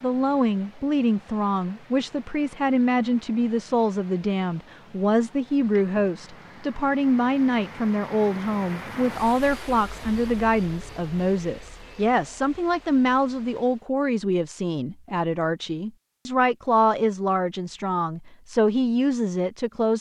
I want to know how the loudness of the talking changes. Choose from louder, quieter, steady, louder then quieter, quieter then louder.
steady.